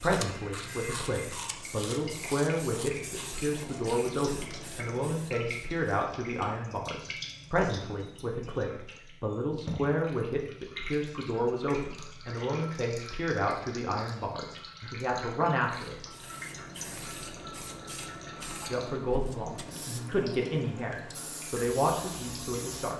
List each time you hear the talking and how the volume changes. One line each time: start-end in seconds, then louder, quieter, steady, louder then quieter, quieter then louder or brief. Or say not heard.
0.0-15.9 steady
18.6-22.9 steady.